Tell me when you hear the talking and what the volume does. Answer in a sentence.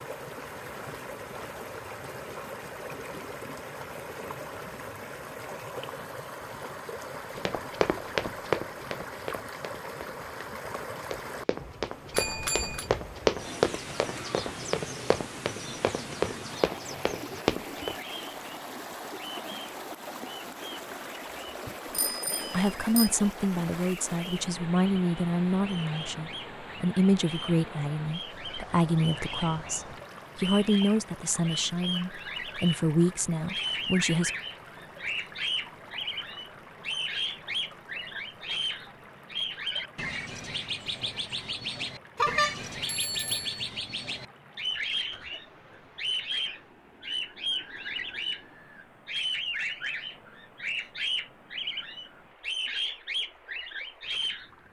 You can hear the talking from 22.5 to 34.3 s, at a steady volume.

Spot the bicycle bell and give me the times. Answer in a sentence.
The bicycle bell can be heard from 12.1 to 12.8 s, from 21.6 to 23.1 s and from 42.1 to 43.6 s.